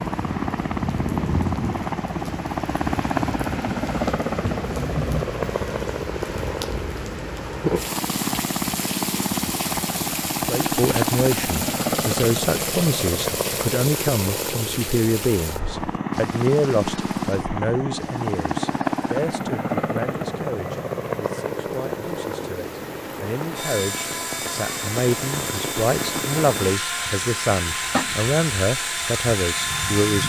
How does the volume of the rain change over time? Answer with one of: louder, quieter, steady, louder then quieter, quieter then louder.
quieter then louder.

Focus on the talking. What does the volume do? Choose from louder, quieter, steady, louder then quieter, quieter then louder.
quieter then louder.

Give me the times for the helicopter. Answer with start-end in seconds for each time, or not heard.
0.0-30.2.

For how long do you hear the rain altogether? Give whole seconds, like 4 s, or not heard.
30 s.